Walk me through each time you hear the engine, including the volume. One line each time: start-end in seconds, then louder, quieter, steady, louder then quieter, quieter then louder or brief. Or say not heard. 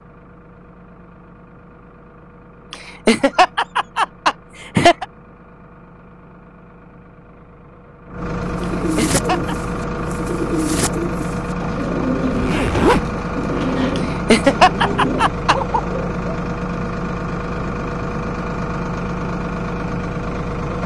0.0-20.8 louder.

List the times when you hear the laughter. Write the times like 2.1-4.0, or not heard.
2.7-5.0, 8.6-9.6, 13.9-15.6.